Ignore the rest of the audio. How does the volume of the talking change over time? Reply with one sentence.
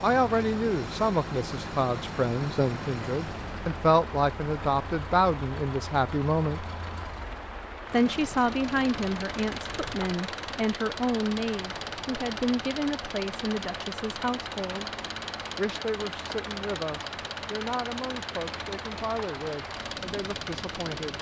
The loudness of the talking goes down.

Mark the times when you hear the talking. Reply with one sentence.
The talking can be heard from 0.0 to 6.7 s, from 7.9 to 14.9 s and from 15.6 to 21.1 s.